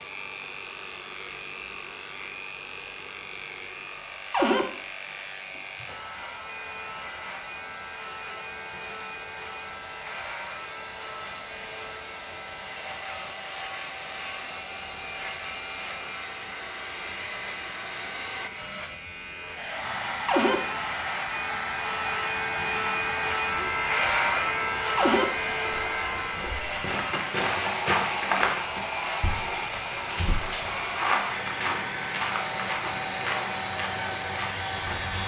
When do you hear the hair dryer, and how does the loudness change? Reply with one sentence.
The hair dryer can be heard from 0.0 to 35.2 s, getting louder.